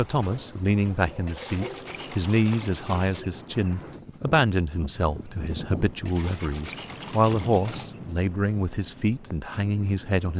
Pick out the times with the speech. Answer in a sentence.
The speech can be heard from 0.0 to 10.3 s.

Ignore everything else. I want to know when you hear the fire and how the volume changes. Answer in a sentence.
You can't hear the fire here.